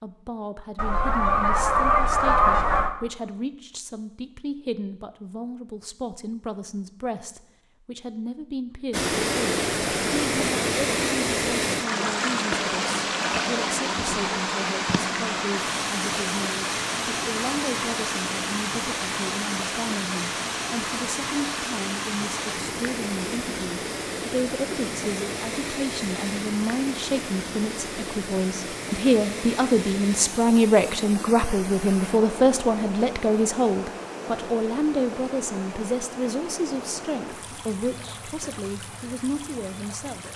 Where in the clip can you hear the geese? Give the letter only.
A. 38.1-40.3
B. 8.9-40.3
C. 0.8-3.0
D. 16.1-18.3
C.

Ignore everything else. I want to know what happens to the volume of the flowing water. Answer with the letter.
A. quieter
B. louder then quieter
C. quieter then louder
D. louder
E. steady
A.